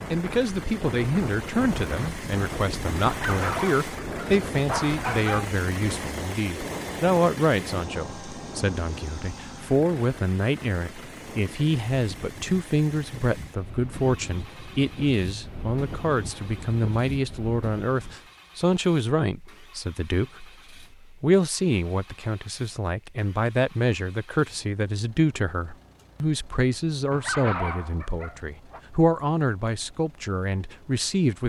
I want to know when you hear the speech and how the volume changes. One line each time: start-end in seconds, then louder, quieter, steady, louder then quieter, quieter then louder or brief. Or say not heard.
0.1-31.4 steady.